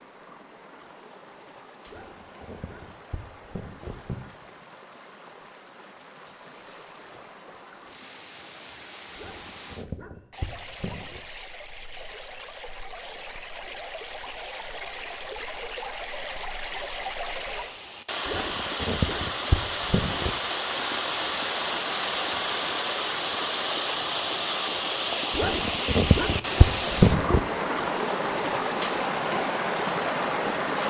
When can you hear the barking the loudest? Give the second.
27 s.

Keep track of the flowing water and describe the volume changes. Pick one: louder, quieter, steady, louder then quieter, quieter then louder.
louder.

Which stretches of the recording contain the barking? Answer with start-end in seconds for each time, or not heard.
1.9-4.2, 9.2-11.2, 18.2-20.3, 25.4-27.4.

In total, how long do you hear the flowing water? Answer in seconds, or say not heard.
31 s.